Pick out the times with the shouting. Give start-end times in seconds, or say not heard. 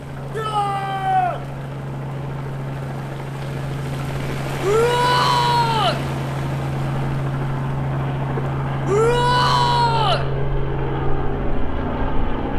0.3-1.4, 4.6-6.0, 8.8-10.2.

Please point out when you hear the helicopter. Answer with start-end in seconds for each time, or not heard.
0.0-12.5.